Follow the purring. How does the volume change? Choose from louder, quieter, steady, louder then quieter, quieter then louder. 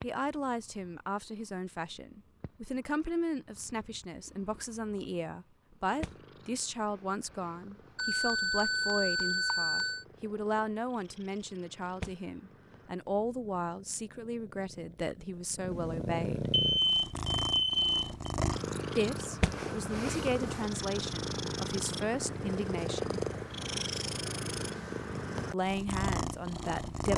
louder.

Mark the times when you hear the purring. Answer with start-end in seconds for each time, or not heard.
0.0-27.1.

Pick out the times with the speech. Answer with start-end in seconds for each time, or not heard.
0.0-16.5, 18.9-23.2, 25.5-27.1.